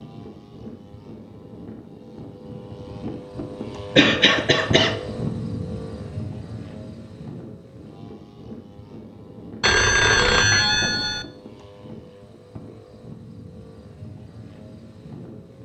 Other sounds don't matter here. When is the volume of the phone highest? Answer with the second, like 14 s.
10 s.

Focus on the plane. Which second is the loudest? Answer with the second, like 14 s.
5 s.